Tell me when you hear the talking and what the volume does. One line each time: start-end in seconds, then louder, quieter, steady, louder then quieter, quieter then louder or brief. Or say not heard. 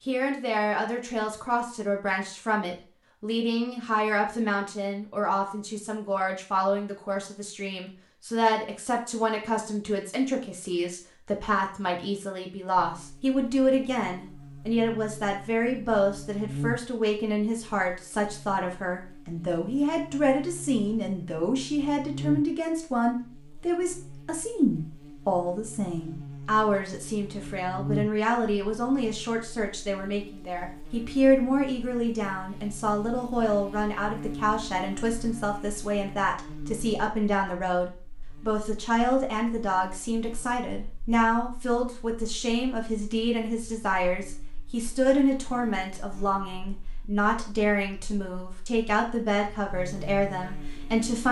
0.1-51.2 steady.